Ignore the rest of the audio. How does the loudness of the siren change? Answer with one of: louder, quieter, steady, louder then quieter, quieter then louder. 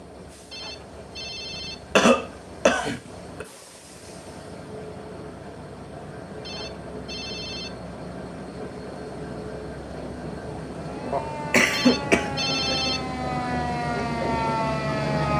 louder.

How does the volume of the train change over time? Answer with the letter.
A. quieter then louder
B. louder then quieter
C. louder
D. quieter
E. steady
C.